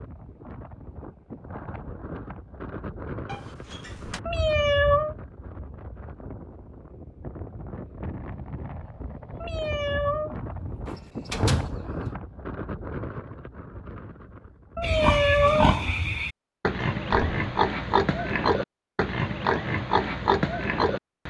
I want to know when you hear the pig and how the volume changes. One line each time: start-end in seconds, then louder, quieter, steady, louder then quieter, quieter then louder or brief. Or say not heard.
14.8-21.2 steady.